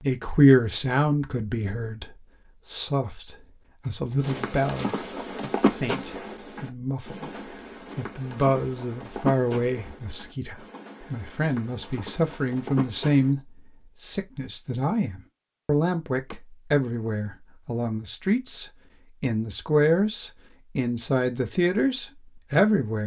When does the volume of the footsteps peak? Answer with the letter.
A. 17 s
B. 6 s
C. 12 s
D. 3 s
B.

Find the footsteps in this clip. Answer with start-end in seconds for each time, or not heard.
4.2-13.3.